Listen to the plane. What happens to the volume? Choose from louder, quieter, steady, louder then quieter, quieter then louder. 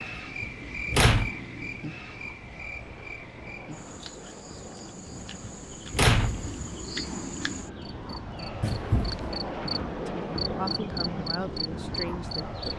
louder.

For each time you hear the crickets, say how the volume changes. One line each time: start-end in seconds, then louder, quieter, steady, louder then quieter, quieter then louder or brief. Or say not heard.
0.0-12.7 quieter then louder.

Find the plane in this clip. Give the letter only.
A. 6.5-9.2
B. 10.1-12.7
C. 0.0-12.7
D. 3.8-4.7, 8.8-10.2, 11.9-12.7
C.